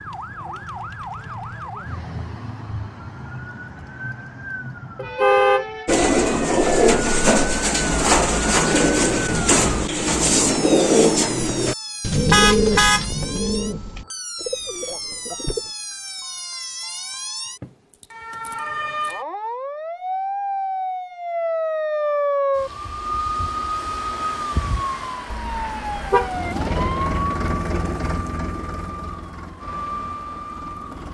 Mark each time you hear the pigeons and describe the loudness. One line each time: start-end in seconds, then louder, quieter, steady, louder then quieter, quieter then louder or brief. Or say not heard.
5.8-15.7 quieter.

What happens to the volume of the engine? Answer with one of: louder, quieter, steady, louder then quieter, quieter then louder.
quieter.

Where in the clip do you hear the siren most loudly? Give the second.
22 s.